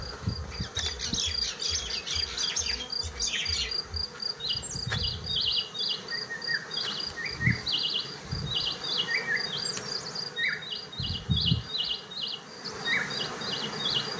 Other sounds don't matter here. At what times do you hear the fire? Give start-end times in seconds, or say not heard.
not heard.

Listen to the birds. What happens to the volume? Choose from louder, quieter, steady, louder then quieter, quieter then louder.
steady.